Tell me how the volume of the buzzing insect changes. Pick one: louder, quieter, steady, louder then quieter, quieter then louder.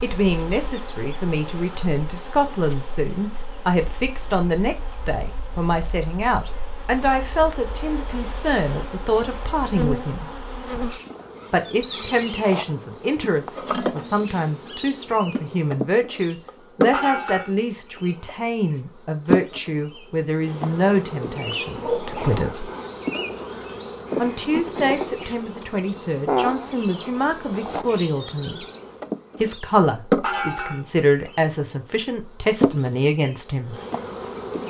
louder.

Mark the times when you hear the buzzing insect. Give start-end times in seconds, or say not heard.
0.0-34.6.